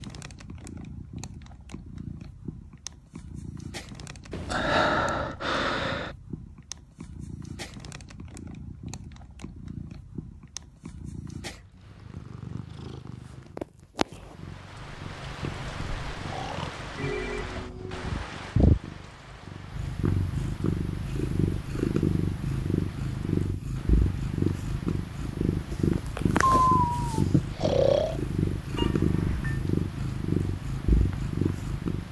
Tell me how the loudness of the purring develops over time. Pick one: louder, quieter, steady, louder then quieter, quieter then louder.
louder.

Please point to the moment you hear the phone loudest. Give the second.
17 s.